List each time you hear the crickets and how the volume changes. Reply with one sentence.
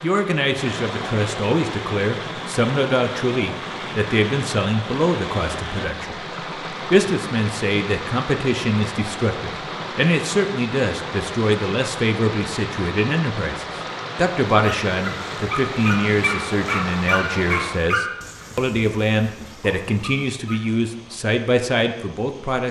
You can't hear the crickets here.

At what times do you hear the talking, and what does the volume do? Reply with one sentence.
The talking can be heard from 0.0 to 22.6 s, at a steady volume.